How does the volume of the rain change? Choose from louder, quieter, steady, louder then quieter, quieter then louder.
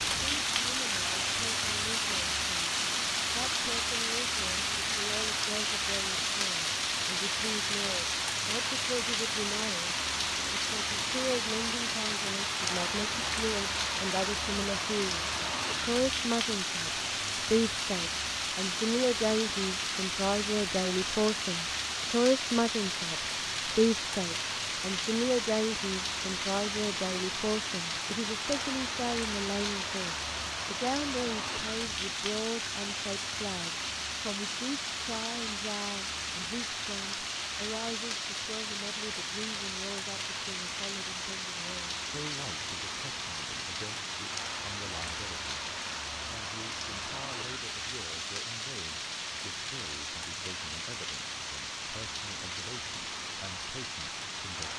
quieter.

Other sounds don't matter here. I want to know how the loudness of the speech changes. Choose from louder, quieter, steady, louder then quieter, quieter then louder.
louder then quieter.